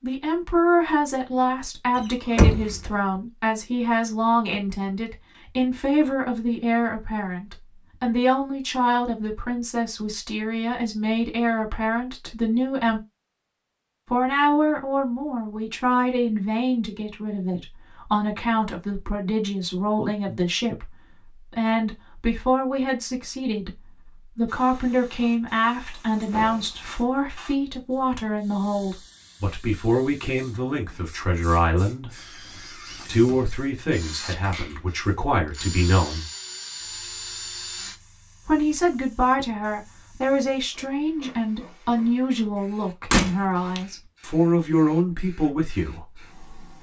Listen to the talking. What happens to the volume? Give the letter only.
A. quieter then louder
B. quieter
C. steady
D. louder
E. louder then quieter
C.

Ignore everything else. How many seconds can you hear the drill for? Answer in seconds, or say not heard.
6 s.